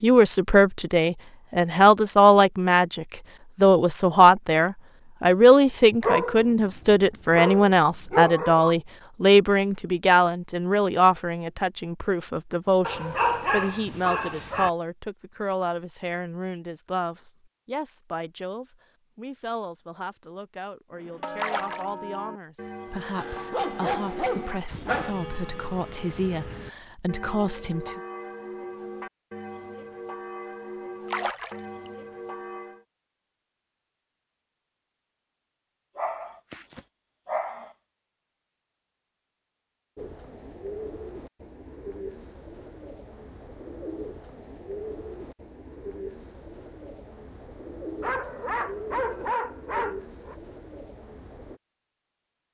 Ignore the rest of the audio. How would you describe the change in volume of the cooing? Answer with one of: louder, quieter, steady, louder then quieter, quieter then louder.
steady.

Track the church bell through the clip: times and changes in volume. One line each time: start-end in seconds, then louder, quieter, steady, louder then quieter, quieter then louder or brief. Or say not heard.
20.9-32.9 steady.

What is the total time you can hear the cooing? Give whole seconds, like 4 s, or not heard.
12 s.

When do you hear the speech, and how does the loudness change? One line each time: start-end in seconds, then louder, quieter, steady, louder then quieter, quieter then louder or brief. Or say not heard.
0.0-28.0 quieter.